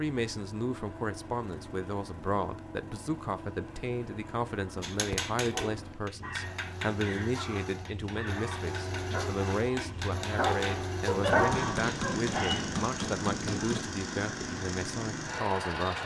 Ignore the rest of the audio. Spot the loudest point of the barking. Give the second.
11 s.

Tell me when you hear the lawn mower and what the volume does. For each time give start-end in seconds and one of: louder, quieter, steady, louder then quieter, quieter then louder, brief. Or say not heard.
0.0-16.0 louder.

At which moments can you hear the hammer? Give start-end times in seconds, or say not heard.
4.8-13.8.